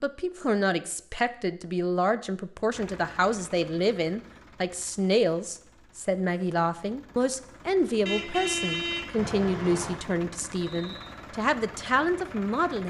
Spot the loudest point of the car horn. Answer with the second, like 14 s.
9 s.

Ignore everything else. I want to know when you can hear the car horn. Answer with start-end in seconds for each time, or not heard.
8.1-10.0.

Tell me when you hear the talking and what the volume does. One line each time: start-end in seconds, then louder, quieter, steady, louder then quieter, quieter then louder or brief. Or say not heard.
0.0-12.8 steady.